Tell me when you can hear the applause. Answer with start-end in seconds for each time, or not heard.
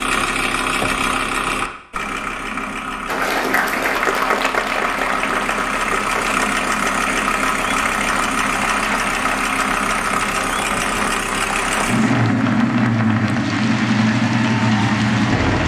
3.0-15.6.